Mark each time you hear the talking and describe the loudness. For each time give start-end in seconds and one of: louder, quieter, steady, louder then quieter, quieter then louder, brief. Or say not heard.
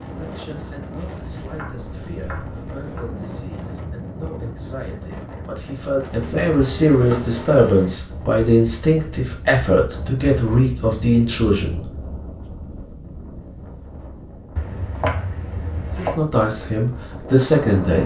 0.0-11.8 louder
15.9-18.0 brief.